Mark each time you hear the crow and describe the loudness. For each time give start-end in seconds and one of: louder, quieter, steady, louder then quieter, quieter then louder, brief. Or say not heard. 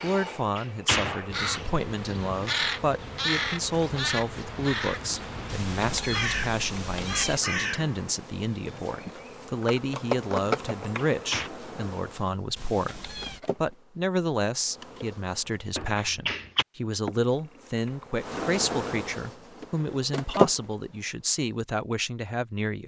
1.2-8.1 steady.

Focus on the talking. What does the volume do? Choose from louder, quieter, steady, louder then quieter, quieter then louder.
steady.